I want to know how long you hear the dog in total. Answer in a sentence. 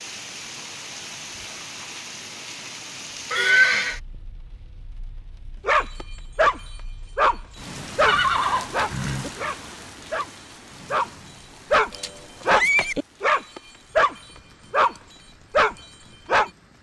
The dog can be heard for 11 seconds in total.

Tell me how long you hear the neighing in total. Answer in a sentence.
The neighing can be heard for 3 seconds in total.